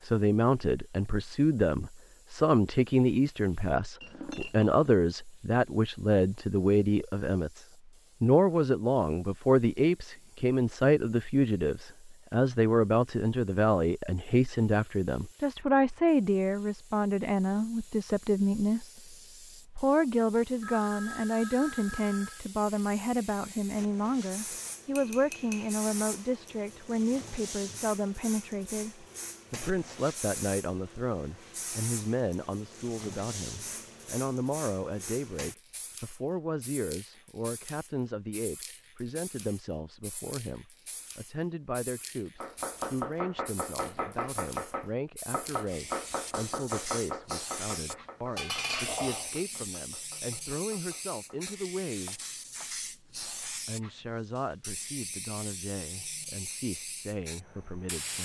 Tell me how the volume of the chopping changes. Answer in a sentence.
The volume of the chopping goes down.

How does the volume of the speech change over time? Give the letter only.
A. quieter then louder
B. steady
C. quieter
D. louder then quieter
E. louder
C.